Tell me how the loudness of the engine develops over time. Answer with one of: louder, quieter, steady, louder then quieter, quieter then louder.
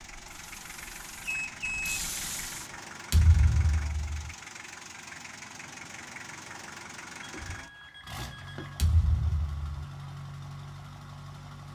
steady.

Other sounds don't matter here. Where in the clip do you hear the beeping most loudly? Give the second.
2 s.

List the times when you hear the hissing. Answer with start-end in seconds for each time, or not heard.
0.1-2.8.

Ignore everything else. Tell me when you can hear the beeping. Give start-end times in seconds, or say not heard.
1.2-2.0, 7.2-8.8.